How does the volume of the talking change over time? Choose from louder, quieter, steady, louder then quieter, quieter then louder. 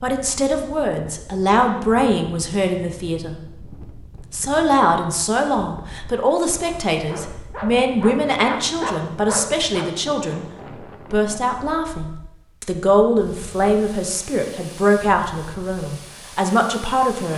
steady.